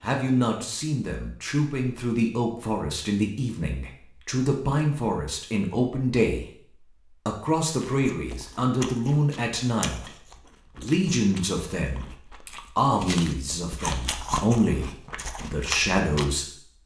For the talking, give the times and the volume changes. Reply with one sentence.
You can hear the talking from 0.0 to 16.8 s, at a steady volume.